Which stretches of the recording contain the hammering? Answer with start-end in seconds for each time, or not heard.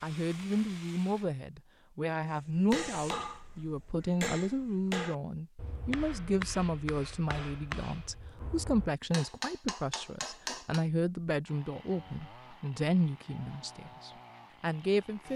2.4-10.8.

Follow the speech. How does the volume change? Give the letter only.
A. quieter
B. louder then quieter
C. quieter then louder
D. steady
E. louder
D.